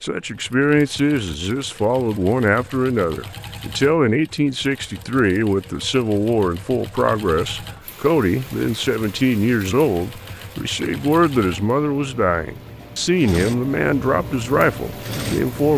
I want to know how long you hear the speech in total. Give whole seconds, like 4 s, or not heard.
16 s.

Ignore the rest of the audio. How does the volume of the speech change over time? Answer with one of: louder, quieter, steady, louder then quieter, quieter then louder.
steady.